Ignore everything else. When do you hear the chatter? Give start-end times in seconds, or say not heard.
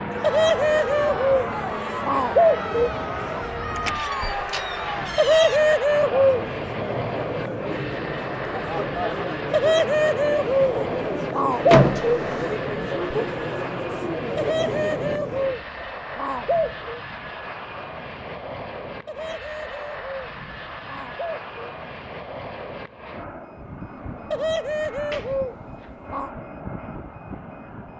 0.1-15.7.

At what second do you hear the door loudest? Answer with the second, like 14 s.
12 s.